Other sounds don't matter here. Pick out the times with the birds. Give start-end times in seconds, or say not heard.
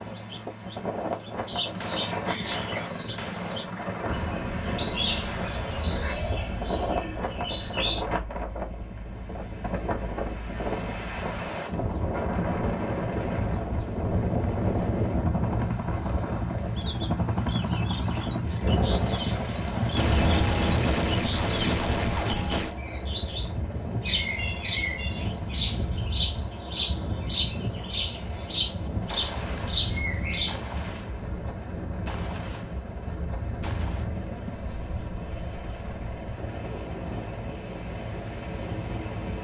0.0-30.6.